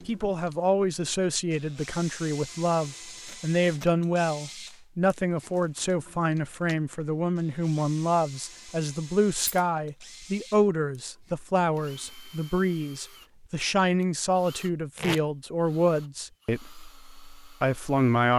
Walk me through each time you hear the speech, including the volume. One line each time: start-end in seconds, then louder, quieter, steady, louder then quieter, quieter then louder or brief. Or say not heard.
0.1-18.3 steady.